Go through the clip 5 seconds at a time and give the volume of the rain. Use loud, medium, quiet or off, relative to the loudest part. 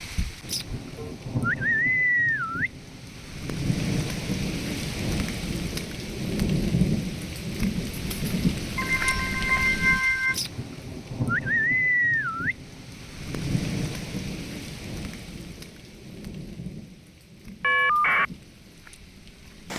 loud, loud, loud, quiet.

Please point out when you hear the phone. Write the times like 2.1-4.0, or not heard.
0.1-1.1, 8.8-10.3, 17.6-18.2.